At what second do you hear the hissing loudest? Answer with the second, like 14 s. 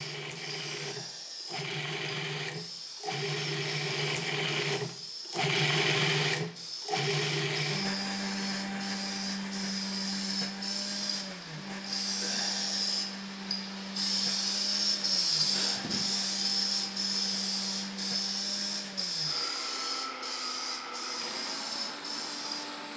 15 s.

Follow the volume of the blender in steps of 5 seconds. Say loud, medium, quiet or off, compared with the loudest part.
loud, loud, medium, medium, medium.